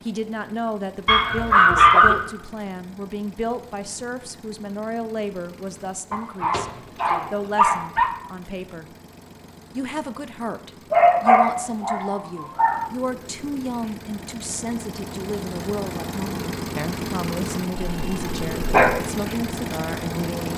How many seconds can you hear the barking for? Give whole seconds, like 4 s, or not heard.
6 s.